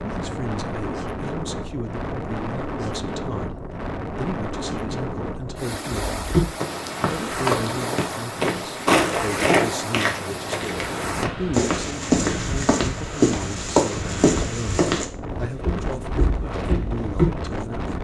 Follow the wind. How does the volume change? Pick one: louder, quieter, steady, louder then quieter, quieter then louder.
steady.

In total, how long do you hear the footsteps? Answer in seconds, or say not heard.
11 s.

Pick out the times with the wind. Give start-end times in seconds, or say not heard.
0.0-17.9.